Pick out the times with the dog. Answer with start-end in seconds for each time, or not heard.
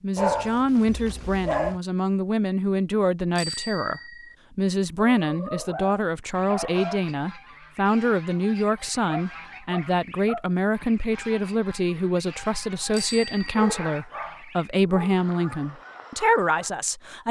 0.1-1.8, 5.2-7.0, 9.1-10.6, 13.5-15.2.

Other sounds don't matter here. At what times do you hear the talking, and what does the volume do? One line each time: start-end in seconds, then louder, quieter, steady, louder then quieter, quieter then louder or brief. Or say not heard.
0.0-17.2 steady.